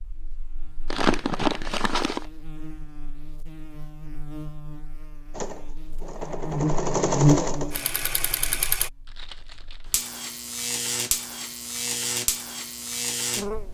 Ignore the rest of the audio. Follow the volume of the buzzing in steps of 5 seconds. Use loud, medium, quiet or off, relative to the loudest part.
quiet, loud, loud.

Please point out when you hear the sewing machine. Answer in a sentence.
You can hear the sewing machine from 5.3 to 8.9 s.